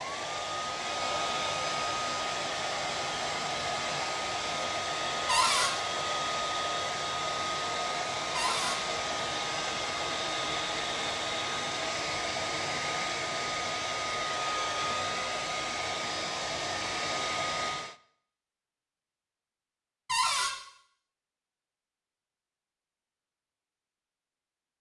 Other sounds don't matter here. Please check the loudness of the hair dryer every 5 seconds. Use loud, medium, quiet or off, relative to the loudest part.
loud, loud, loud, loud, off.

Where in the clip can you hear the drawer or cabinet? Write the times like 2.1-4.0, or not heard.
5.2-5.8, 8.3-8.8, 20.1-20.6.